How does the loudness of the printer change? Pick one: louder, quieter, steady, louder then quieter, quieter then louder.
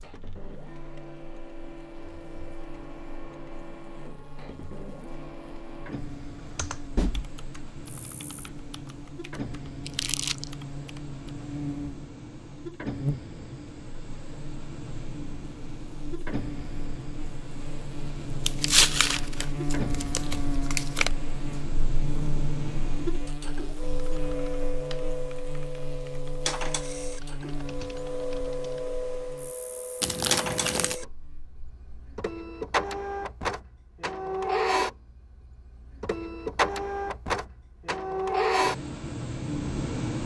louder.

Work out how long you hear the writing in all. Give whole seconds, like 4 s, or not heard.
not heard.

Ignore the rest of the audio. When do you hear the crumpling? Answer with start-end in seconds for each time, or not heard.
9.8-10.4, 18.4-21.1, 30.0-30.9.